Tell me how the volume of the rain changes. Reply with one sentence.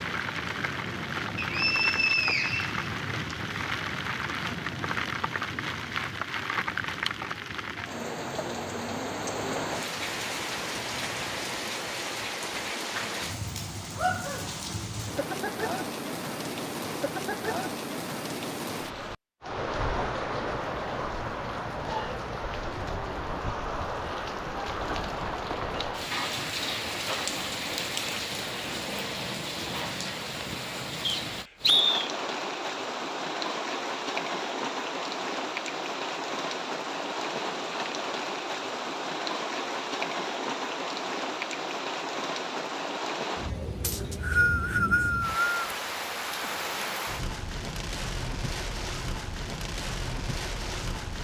The loudness of the rain stays about the same.